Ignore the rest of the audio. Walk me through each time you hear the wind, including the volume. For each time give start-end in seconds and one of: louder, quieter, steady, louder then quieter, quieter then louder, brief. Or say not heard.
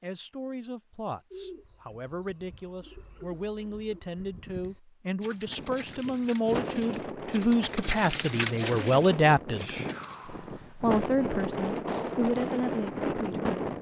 5.5-13.7 quieter then louder.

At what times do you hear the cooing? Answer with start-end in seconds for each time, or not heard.
1.3-10.2.